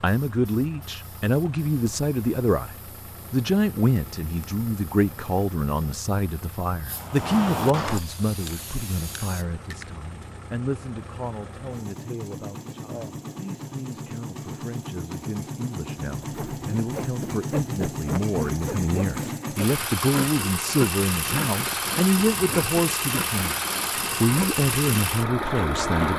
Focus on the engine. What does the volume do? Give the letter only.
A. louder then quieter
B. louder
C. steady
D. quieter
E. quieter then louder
B.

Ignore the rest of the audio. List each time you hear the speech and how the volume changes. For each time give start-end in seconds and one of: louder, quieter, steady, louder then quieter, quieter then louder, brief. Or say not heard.
0.0-23.6 quieter then louder
24.2-26.1 brief.